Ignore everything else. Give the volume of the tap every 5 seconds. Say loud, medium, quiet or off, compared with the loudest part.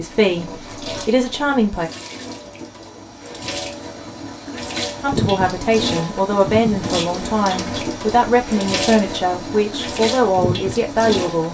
medium, loud, loud.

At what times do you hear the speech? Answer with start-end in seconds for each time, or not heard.
0.0-1.9, 5.0-11.5.